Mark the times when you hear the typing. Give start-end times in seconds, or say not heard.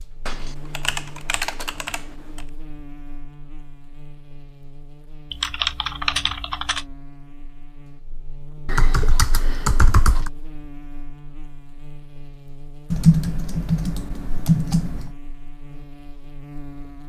0.2-2.0, 5.3-6.8, 8.7-10.3, 12.9-15.2.